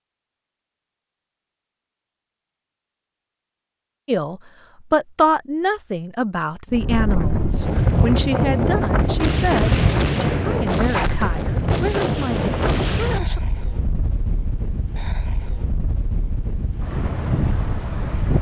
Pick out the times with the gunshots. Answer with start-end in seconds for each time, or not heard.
9.2-13.2.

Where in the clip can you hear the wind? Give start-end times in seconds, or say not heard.
6.7-18.3.